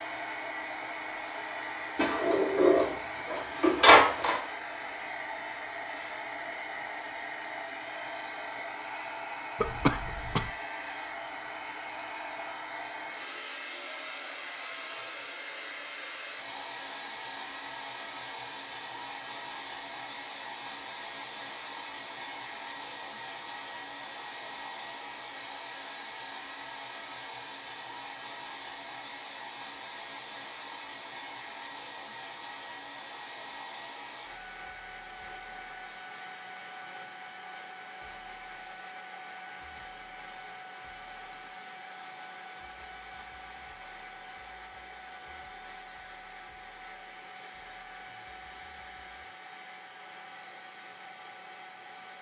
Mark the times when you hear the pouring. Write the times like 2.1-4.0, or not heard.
not heard.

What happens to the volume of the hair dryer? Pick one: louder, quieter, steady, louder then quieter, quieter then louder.
quieter.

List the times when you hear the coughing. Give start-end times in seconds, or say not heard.
9.6-10.5.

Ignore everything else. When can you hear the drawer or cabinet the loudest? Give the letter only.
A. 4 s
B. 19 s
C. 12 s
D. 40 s
A.